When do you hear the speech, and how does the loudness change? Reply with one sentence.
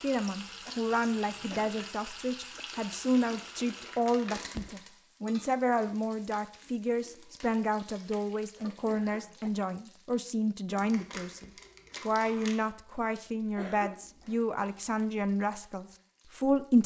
You can hear the speech from 0.0 to 16.8 s, at a steady volume.